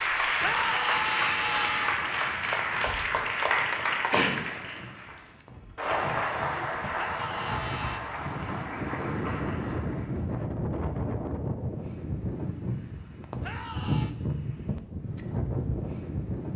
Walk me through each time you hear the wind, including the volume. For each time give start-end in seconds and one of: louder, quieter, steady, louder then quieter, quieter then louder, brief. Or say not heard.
0.0-16.5 louder.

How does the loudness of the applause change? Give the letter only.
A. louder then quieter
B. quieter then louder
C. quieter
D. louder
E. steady
C.